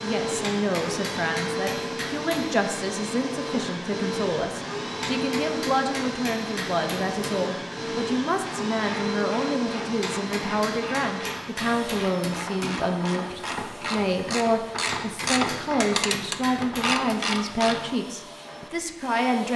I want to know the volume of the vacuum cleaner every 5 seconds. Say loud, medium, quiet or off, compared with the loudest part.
loud, loud, medium, medium.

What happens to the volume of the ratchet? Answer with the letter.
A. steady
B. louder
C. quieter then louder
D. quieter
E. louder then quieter
B.